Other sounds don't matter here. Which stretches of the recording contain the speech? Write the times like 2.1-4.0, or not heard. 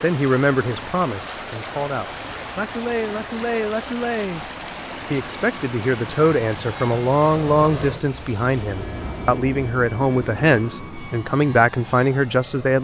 0.0-4.5, 5.1-12.7.